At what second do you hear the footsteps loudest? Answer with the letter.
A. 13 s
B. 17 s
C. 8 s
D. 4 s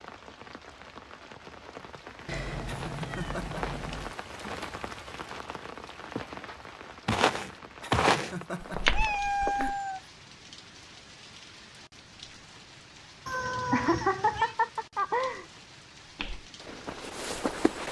C.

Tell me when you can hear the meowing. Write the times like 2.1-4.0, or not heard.
2.2-4.2, 8.9-10.0, 13.2-14.6.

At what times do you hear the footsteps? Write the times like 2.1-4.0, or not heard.
2.6-9.8, 16.1-17.8.